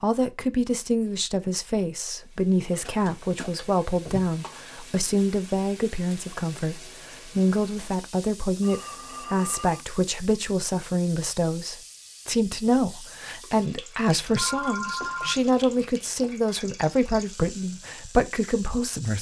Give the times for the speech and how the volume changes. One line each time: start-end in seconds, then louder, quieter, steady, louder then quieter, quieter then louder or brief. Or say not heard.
0.0-19.1 steady.